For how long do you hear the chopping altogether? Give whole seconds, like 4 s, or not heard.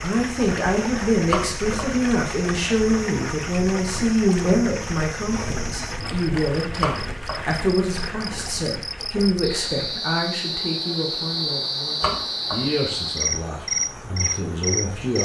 2 s.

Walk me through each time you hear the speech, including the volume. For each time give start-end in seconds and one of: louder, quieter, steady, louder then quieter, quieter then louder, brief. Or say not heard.
0.0-15.1 quieter.